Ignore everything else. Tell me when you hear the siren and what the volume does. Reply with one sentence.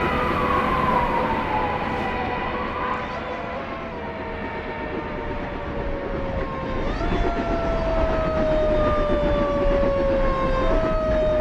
You can hear the siren from 0.0 to 11.3 s, getting quieter then louder.